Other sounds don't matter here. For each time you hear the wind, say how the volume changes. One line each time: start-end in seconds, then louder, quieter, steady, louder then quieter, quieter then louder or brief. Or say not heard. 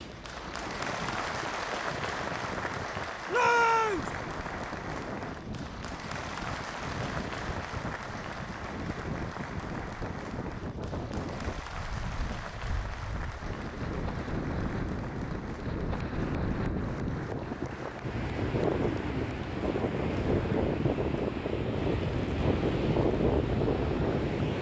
0.0-24.5 louder.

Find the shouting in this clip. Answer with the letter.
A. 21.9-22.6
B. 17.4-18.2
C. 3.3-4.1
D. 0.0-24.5
C.